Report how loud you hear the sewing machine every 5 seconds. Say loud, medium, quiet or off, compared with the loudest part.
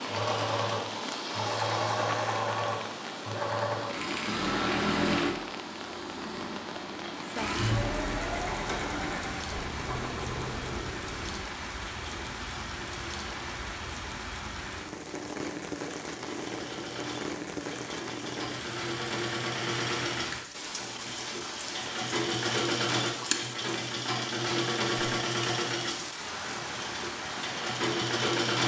loud, loud, medium, medium, loud, loud.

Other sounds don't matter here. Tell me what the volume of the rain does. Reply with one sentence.
The volume of the rain stays about the same.